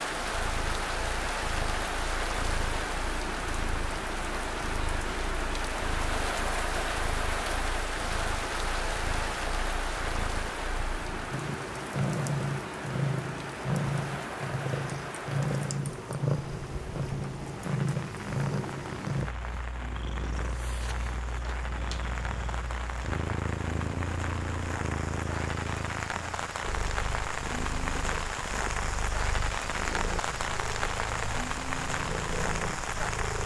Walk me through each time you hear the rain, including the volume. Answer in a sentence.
The rain can be heard from 0.0 to 33.4 s, getting quieter then louder.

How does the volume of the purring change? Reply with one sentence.
The volume of the purring goes up, then down.